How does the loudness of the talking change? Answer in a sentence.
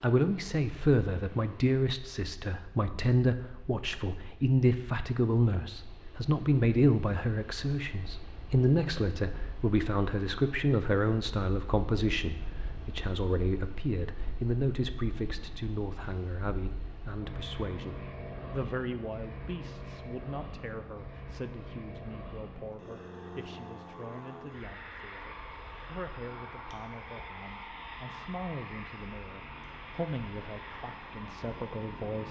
The loudness of the talking goes down.